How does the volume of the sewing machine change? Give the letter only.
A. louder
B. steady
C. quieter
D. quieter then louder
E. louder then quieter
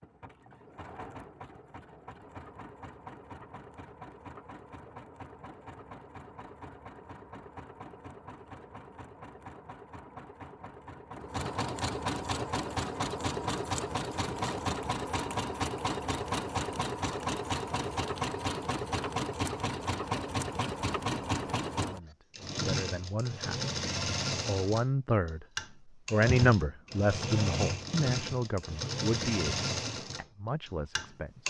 A.